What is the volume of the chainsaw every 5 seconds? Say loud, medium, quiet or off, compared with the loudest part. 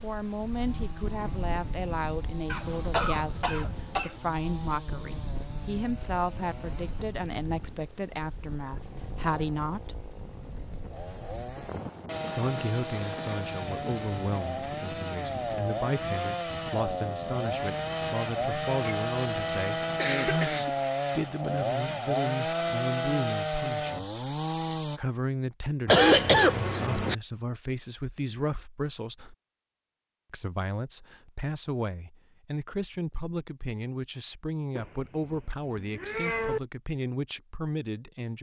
quiet, quiet, medium, loud, loud, off, off, off.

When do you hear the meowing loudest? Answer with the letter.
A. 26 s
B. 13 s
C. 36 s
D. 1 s
C.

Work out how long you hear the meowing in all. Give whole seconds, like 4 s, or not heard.
2 s.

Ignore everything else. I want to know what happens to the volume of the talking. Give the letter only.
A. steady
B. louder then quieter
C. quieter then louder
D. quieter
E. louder
A.